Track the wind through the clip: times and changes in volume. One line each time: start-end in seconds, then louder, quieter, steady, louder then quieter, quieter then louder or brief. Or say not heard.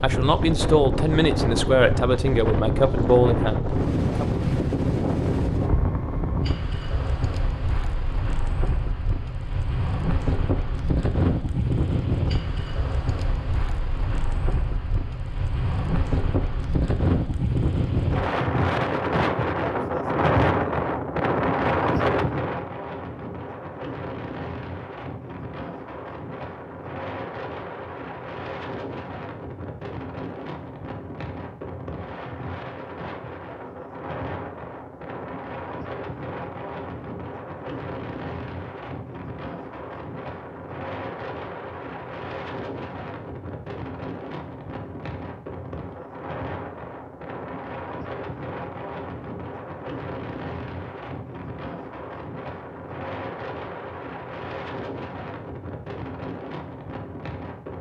0.0-57.7 quieter.